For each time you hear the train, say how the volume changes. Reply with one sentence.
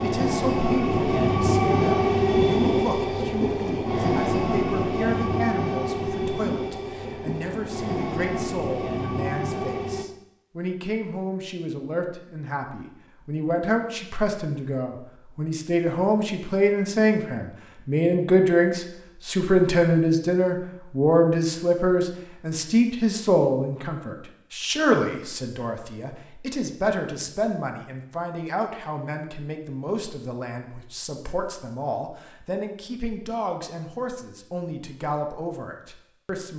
You can hear the train from 0.0 to 10.1 s, getting quieter.